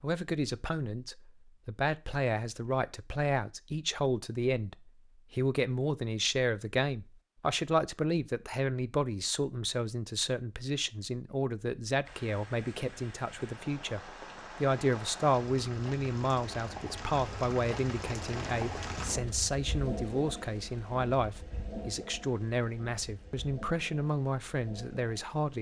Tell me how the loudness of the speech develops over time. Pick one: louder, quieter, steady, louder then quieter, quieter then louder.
steady.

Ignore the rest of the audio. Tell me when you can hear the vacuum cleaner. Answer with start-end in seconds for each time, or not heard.
not heard.